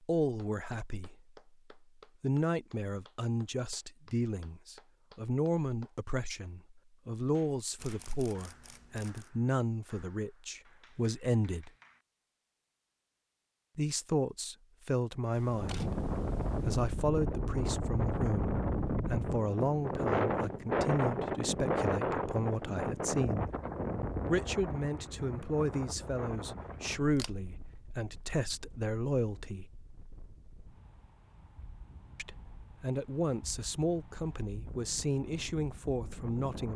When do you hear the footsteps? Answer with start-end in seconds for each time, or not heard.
not heard.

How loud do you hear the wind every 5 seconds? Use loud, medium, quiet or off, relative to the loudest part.
off, off, off, loud, loud, quiet, quiet, quiet.